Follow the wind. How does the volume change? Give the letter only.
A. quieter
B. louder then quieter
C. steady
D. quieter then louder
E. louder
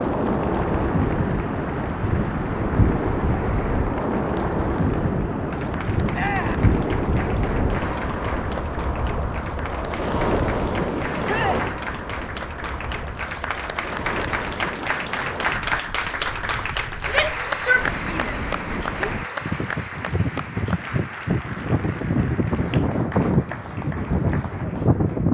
D.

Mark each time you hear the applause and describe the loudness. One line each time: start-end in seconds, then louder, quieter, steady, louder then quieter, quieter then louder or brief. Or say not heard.
0.0-25.3 louder then quieter.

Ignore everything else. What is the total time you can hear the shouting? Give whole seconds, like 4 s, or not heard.
3 s.